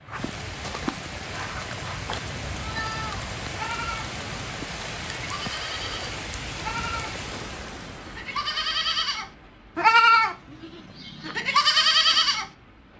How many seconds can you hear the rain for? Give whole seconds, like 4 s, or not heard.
13 s.